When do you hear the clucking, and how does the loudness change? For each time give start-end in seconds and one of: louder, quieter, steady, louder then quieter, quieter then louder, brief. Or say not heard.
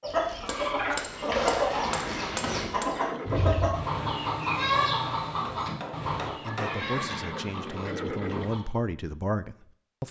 0.0-8.6 quieter.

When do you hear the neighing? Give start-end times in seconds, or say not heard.
1.8-3.5, 6.5-8.5.